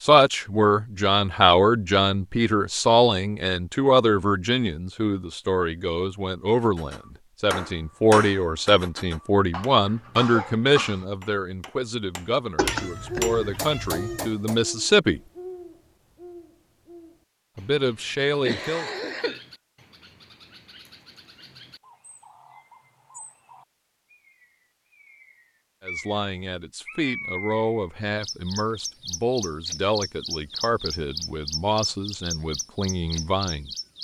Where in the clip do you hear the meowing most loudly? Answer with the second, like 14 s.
13 s.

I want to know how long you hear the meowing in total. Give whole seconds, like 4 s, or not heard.
2 s.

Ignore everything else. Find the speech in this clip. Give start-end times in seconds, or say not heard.
0.0-15.2, 17.6-18.9, 25.8-33.7.